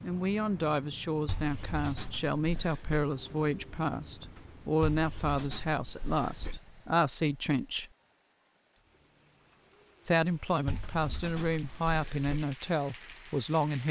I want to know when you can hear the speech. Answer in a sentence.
You can hear the speech from 0.0 to 7.8 s and from 10.1 to 13.8 s.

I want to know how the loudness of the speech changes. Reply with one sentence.
The volume of the speech stays about the same.